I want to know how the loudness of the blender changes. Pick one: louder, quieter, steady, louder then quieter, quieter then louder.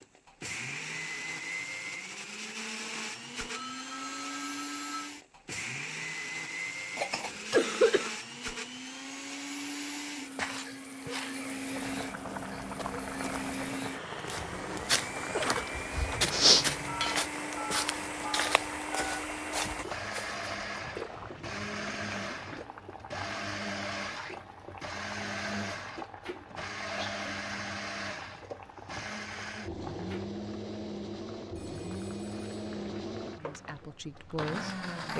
steady.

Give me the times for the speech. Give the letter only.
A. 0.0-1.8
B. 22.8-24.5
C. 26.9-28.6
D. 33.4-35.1
D.